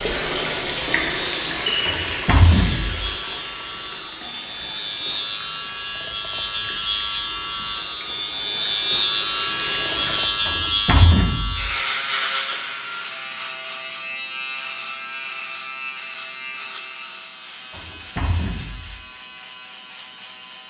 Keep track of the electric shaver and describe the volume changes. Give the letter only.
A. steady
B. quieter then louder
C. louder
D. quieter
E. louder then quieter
E.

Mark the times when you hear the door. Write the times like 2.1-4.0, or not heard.
1.9-3.1, 10.4-11.7, 17.7-19.0.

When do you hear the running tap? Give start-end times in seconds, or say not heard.
0.0-10.2.